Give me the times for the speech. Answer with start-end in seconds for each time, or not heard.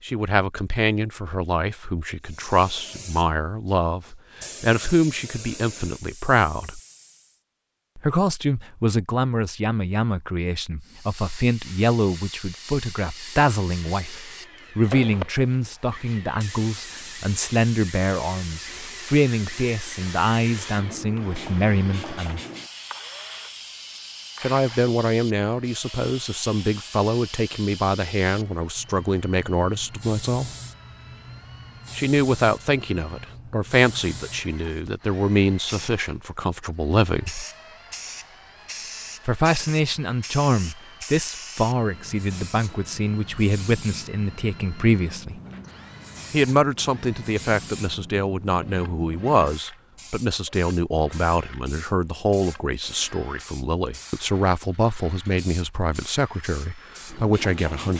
0.0-6.8, 8.0-22.4, 24.4-30.5, 31.9-37.5, 39.2-45.4, 46.3-57.9.